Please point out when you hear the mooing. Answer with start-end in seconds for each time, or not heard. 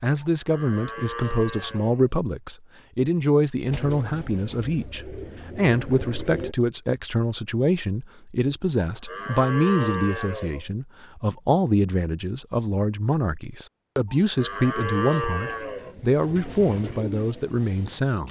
0.5-2.1, 8.8-10.7, 14.1-15.9.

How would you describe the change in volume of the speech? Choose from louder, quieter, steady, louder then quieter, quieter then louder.
steady.